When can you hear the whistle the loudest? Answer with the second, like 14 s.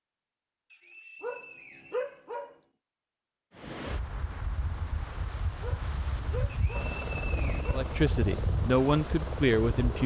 7 s.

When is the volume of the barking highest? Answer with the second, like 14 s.
2 s.